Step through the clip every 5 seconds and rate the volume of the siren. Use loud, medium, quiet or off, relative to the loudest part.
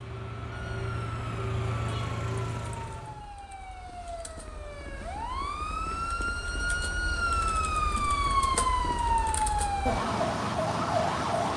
quiet, loud, loud.